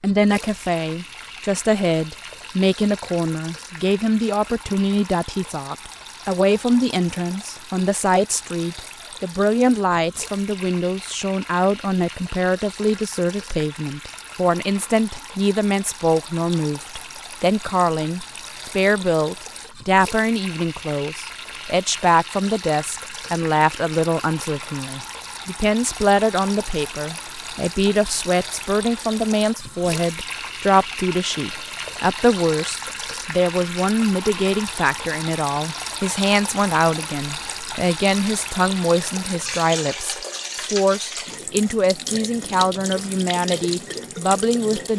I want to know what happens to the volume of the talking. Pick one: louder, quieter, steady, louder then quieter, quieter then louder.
steady.